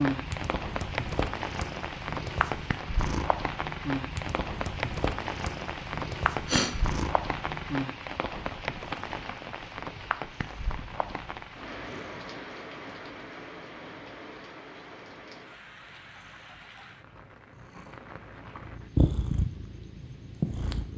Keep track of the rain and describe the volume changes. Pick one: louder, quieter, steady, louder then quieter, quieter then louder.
quieter.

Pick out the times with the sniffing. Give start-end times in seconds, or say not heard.
6.5-7.0.